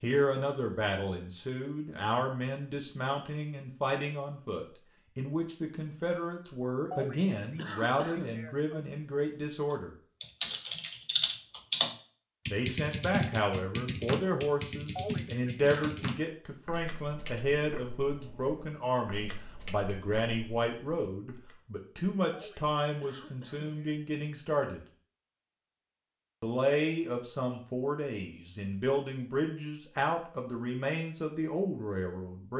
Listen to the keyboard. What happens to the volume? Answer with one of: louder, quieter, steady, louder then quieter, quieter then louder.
quieter.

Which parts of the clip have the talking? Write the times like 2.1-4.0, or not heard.
0.0-9.9, 12.5-24.8, 26.4-32.5.